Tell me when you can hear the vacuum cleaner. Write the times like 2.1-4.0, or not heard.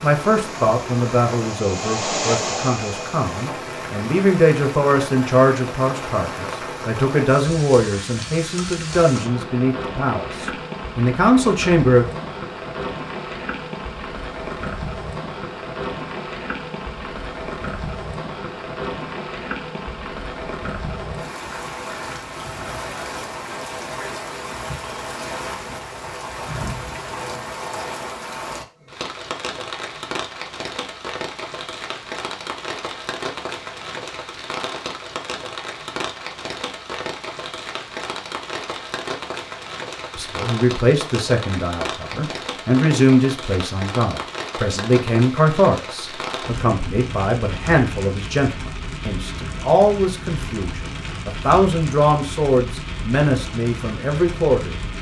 0.2-3.5.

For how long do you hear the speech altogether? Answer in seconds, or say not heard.
27 s.